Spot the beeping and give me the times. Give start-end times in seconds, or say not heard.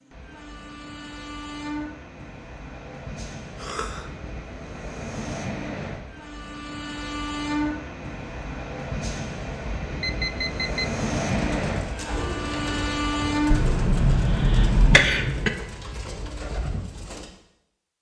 10.0-10.9.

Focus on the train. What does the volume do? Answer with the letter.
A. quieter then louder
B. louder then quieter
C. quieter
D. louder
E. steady
D.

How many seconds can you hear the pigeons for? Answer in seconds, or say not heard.
6 s.